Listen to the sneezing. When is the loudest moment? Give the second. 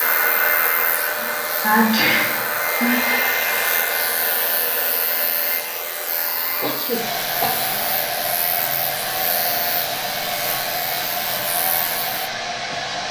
2 s.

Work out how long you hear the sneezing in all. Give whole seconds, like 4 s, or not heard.
3 s.